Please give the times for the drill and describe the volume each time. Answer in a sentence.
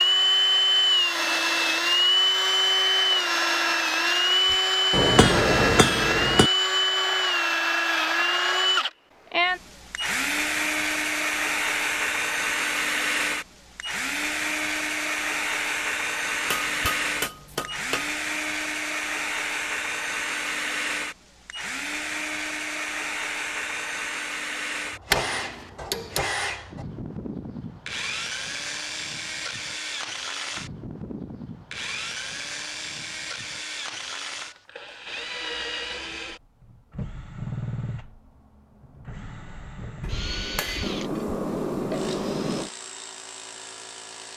The drill can be heard from 0.0 to 44.3 s, getting quieter.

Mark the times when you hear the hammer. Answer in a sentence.
The hammer can be heard from 4.5 to 6.5 s, from 16.4 to 18.1 s, from 25.1 to 26.2 s and from 40.0 to 42.7 s.